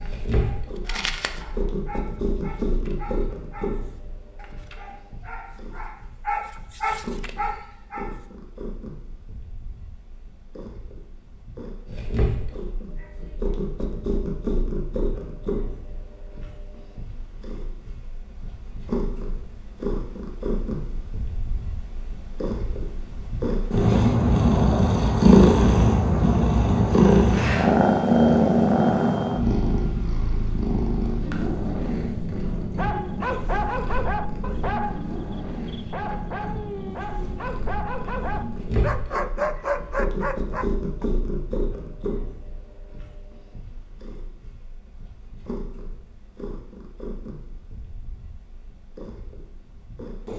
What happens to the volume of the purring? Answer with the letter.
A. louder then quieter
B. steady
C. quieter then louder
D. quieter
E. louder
A.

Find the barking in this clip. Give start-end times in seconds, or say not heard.
0.0-8.2, 32.8-41.0.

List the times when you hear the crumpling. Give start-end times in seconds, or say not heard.
0.8-1.4.